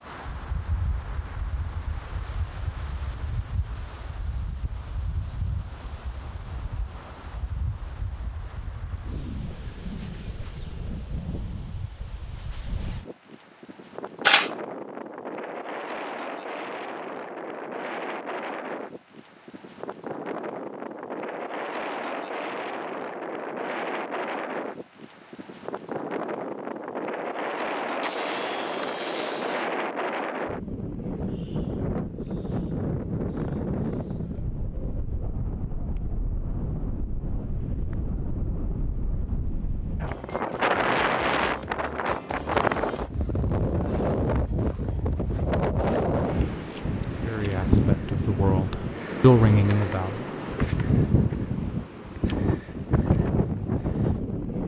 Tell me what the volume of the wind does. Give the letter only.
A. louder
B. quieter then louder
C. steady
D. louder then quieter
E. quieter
A.